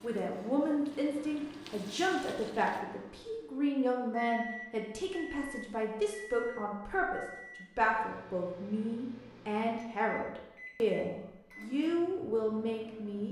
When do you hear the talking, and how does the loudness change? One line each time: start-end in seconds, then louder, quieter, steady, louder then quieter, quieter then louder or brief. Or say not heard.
0.0-13.2 steady.